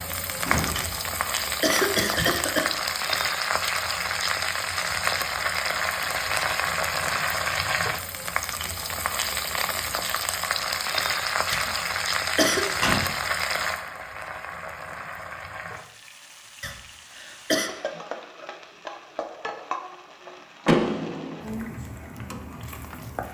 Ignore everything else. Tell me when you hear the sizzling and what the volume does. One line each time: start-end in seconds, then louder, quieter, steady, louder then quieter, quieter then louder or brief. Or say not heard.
0.0-23.2 quieter.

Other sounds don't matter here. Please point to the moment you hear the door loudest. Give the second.
21 s.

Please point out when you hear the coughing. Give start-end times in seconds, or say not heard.
0.8-2.7, 11.5-12.7, 16.6-17.7.